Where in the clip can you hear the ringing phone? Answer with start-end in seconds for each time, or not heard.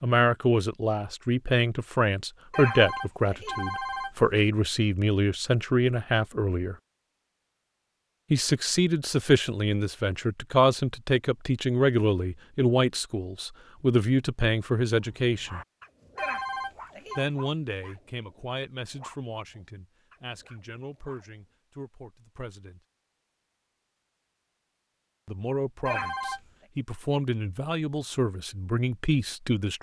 2.5-4.5, 16.1-17.2, 25.9-26.4.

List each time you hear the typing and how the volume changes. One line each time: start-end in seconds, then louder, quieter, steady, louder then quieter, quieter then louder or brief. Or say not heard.
not heard.